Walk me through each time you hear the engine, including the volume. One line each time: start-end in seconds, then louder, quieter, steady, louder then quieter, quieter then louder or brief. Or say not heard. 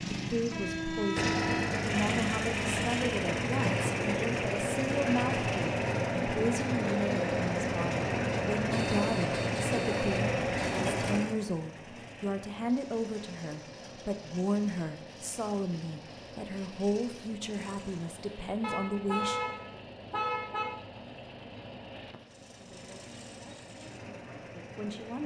0.0-25.2 quieter.